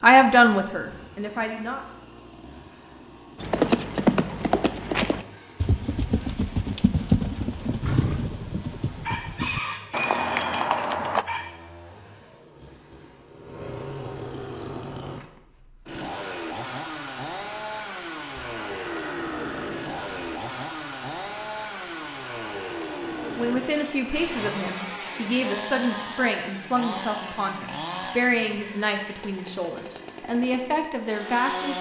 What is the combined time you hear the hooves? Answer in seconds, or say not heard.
8 s.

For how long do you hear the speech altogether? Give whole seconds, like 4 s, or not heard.
10 s.